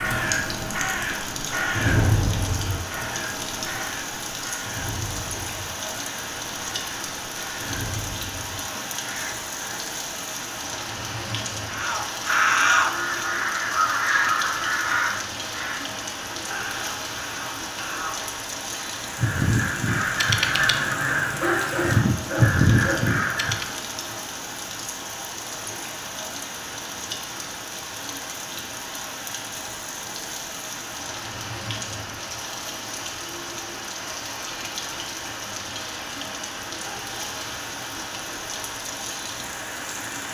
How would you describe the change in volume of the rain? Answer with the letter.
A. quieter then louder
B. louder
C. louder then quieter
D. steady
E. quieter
D.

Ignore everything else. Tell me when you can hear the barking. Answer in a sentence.
The barking can be heard from 21.2 to 23.0 s.